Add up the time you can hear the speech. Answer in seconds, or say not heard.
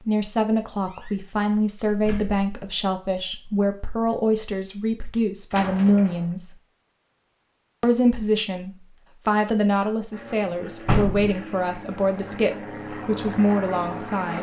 13 s.